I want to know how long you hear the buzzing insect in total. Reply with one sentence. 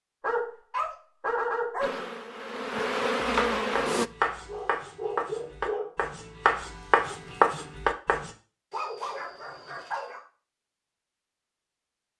The buzzing insect can be heard for 2 seconds in total.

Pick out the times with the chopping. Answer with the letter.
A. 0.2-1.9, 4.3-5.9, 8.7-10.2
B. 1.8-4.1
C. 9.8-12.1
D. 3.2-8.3
D.